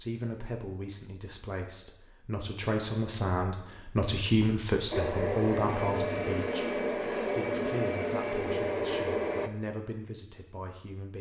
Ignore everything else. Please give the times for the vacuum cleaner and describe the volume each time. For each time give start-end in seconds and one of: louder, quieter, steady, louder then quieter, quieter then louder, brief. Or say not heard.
4.9-9.5 steady.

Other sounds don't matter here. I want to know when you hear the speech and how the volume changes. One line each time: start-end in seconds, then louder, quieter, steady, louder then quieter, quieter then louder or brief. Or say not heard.
0.0-11.1 louder then quieter.